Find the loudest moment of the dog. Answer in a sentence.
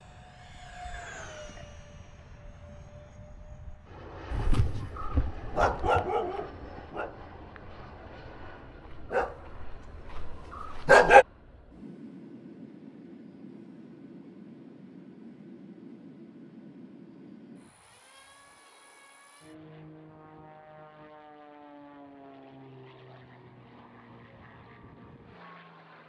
The volume of the dog peaks at 11 seconds.